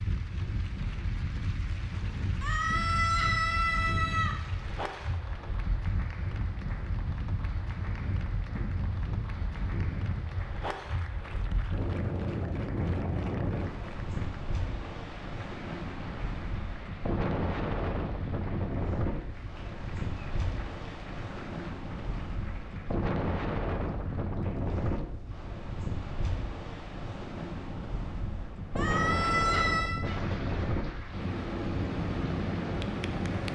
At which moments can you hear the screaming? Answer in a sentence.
You can hear the screaming from 2.4 to 4.3 s and from 28.8 to 30.0 s.